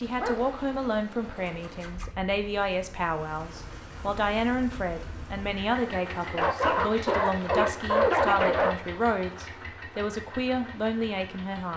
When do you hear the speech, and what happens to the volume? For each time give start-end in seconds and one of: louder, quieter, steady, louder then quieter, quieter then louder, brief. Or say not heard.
0.0-11.7 steady.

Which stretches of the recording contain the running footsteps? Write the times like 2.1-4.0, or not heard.
not heard.